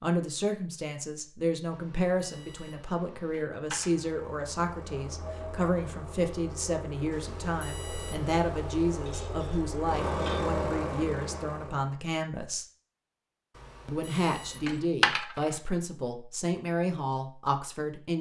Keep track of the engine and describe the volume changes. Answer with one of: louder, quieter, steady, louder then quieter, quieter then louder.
louder.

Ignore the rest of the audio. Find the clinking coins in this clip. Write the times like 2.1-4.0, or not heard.
3.3-4.2, 9.0-10.4, 14.7-15.5.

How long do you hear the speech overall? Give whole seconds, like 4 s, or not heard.
17 s.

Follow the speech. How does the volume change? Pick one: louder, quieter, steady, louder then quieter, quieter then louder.
steady.